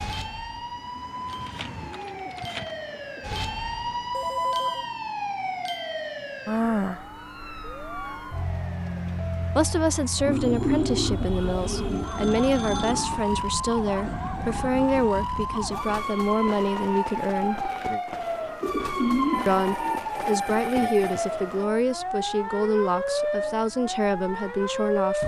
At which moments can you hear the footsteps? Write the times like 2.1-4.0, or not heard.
not heard.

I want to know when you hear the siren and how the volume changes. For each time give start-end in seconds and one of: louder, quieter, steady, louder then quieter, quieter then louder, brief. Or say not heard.
0.0-25.2 steady.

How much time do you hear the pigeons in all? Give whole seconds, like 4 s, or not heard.
7 s.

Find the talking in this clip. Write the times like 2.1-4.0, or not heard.
9.6-17.7, 19.4-25.2.